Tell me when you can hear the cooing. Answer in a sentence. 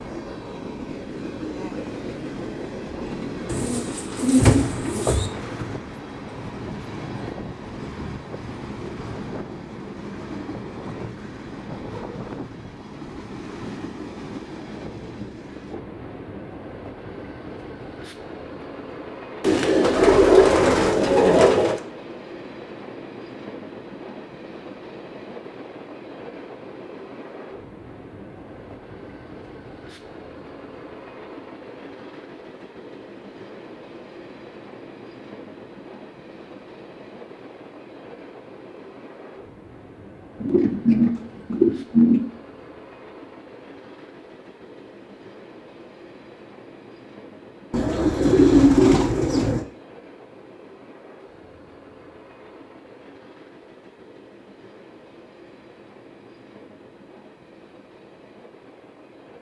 The cooing can be heard from 3.5 to 5.3 s, from 19.4 to 21.8 s, from 40.4 to 42.2 s and from 47.7 to 49.6 s.